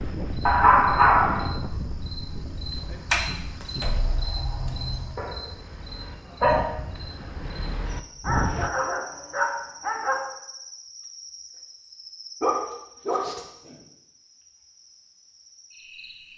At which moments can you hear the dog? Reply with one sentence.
The dog can be heard from 0.5 to 1.5 s, from 5.2 to 6.7 s, from 8.2 to 10.2 s and from 12.4 to 13.8 s.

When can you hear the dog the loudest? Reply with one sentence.
The loudest moment of the dog is at 1 second.